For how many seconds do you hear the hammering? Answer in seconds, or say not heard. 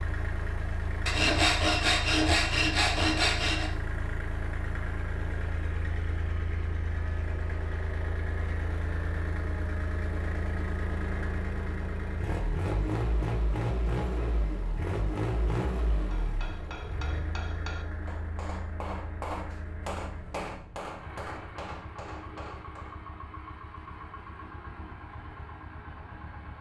7 s.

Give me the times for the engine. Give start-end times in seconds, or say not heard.
0.0-26.5.